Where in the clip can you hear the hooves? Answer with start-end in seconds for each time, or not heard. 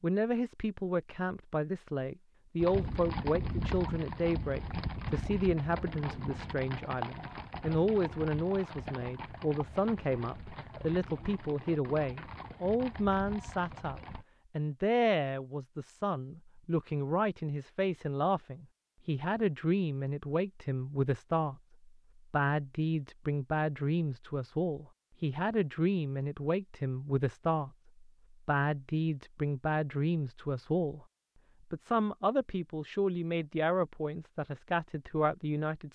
2.6-14.2.